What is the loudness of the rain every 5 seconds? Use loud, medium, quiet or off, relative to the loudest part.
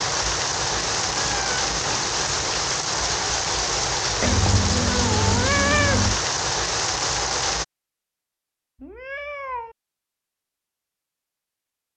loud, loud, off.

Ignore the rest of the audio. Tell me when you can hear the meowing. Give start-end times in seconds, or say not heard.
0.7-2.2, 4.2-6.2, 8.8-9.8.